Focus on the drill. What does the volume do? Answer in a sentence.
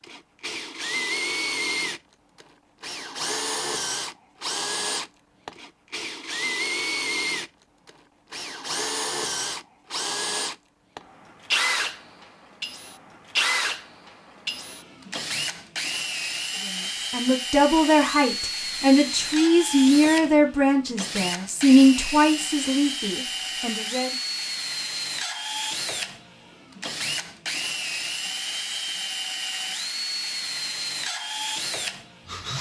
The loudness of the drill stays about the same.